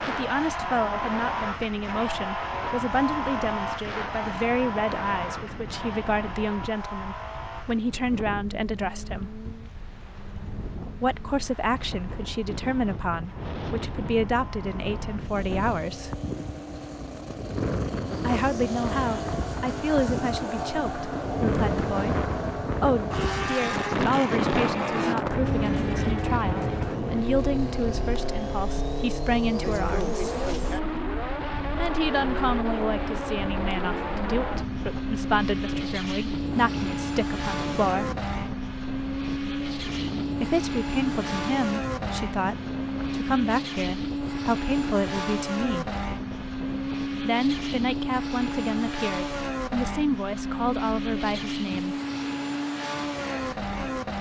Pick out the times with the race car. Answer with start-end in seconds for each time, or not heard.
0.0-54.1.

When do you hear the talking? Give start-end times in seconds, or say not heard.
0.1-9.3, 11.0-16.1, 18.2-30.2, 31.8-38.1, 40.4-46.0, 47.2-52.0.